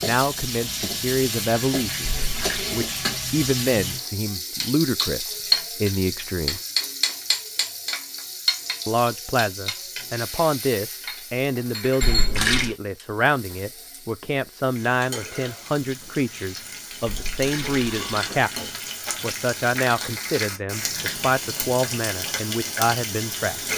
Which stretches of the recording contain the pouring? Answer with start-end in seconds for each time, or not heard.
2.0-2.7, 12.0-12.8, 17.1-18.4.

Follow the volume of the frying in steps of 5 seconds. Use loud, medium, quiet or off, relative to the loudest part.
loud, loud, medium, medium, loud.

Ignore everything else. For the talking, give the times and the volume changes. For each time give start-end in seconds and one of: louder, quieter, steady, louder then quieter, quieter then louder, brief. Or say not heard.
0.0-6.6 steady
8.8-23.6 steady.